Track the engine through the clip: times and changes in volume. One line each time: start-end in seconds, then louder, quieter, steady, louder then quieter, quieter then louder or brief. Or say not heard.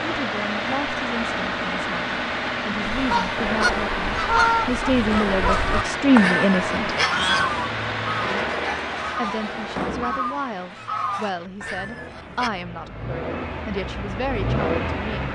0.0-15.3 quieter then louder.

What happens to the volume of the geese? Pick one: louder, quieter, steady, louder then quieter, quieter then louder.
quieter.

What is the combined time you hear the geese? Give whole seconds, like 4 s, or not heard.
10 s.